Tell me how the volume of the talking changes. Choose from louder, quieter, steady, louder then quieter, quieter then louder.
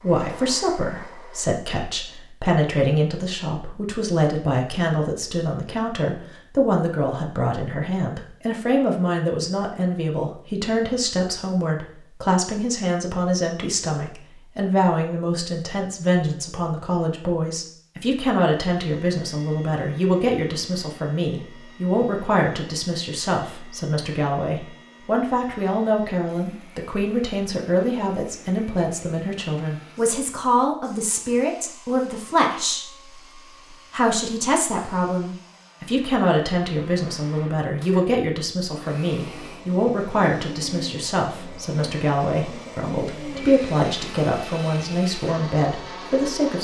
steady.